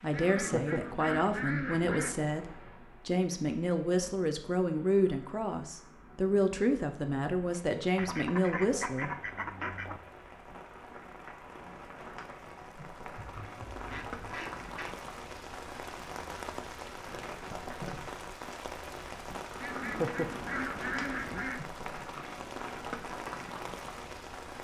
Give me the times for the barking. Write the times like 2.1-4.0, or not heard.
not heard.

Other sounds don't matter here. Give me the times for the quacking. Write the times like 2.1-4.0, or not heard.
0.1-2.1, 8.0-10.0, 13.2-14.9, 19.6-21.6.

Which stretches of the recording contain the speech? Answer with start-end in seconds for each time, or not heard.
0.0-9.1.